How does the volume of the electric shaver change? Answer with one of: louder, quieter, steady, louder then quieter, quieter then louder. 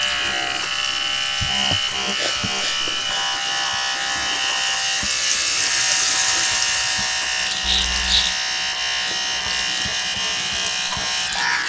steady.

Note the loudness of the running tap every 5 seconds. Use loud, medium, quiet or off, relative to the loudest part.
medium, loud, medium.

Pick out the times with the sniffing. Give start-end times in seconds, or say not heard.
1.7-3.4, 7.6-8.3.